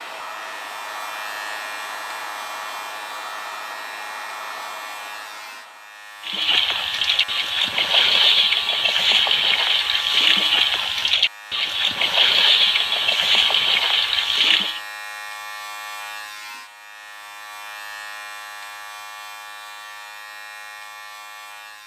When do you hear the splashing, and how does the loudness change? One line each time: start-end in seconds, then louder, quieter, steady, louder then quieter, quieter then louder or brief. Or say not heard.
6.2-14.8 steady.